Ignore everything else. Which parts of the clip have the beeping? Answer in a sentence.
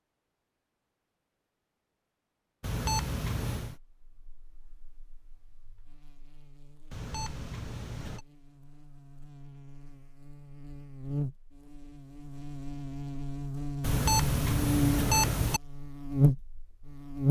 You can hear the beeping from 2.6 to 3.8 s, from 6.9 to 8.2 s and from 13.8 to 15.6 s.